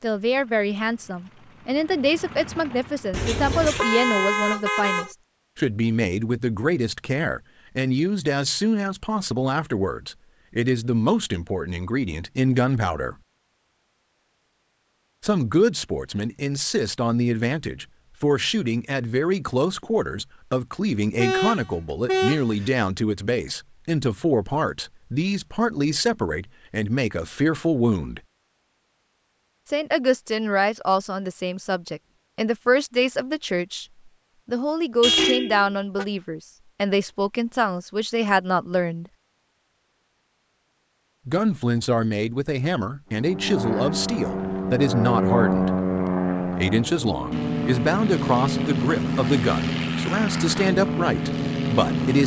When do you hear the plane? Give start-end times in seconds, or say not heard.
0.0-4.7, 43.1-52.2.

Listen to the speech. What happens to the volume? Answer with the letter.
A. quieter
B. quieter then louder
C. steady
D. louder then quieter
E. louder
C.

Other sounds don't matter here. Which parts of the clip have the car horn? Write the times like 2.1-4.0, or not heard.
3.1-5.1, 21.1-22.7, 35.0-36.0.